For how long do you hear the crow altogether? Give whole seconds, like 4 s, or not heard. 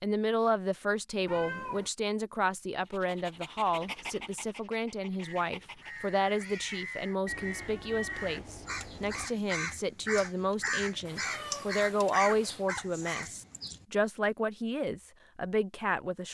9 s.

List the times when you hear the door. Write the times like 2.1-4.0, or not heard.
not heard.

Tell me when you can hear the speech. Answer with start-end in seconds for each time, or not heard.
0.0-16.2.